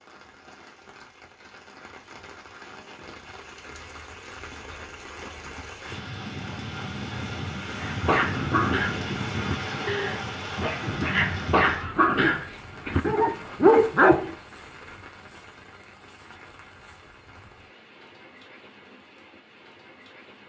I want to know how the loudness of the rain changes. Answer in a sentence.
The volume of the rain goes up, then down.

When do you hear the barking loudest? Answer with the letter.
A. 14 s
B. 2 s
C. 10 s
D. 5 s
A.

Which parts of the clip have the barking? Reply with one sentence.
The barking can be heard from 7.8 to 14.3 s.